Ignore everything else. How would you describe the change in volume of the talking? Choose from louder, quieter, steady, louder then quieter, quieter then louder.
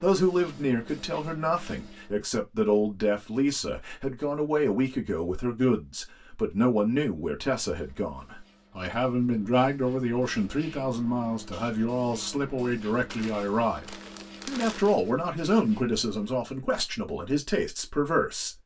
steady.